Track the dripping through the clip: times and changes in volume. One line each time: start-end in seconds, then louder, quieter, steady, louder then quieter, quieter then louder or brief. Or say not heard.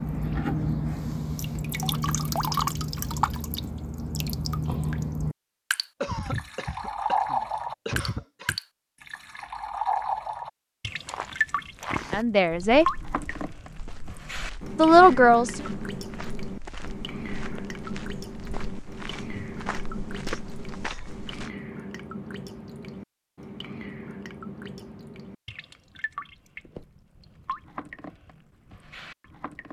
0.0-29.6 quieter.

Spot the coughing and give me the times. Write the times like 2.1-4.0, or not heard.
6.0-8.6.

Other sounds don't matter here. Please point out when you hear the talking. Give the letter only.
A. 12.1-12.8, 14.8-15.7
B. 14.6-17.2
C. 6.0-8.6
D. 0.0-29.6
A.